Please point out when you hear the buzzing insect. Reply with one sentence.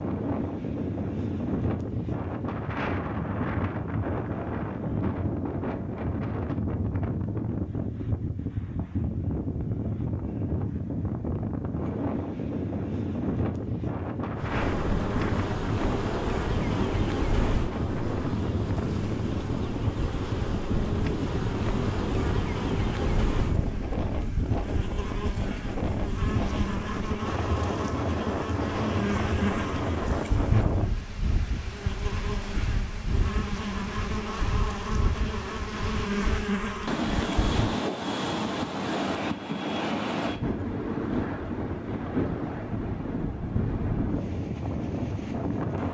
You can hear the buzzing insect from 14.3 to 37.8 s.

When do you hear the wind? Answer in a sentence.
You can hear the wind from 0.0 to 45.8 s.